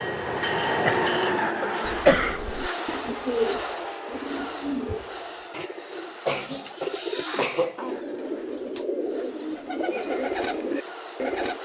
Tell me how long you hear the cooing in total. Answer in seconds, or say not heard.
10 s.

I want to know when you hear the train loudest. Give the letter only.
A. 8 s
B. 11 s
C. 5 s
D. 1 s
D.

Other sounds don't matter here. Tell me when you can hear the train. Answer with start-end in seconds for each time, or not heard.
0.0-11.6.